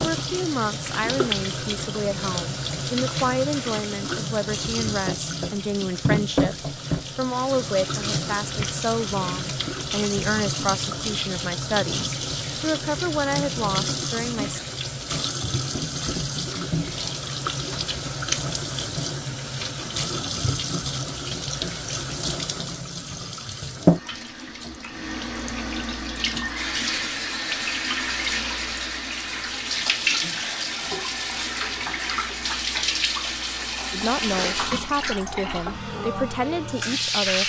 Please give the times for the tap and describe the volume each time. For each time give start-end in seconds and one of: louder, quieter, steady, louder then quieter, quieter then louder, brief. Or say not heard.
0.0-37.4 steady.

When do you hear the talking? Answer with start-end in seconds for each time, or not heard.
0.0-14.6, 33.9-37.4.